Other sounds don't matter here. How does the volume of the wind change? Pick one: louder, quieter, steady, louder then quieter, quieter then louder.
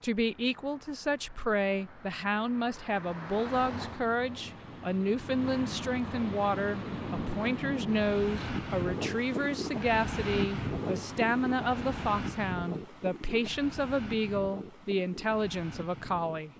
quieter.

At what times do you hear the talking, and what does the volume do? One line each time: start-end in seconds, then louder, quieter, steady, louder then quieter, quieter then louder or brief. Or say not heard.
0.0-16.5 steady.